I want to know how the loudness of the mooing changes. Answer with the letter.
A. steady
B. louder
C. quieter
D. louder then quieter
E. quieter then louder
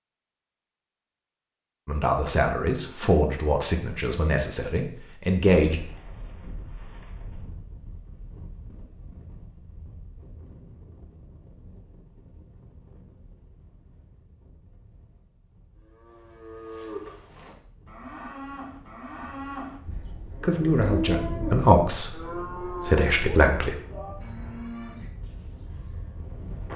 D.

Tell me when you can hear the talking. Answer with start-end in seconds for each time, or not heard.
1.9-5.8, 20.4-23.8.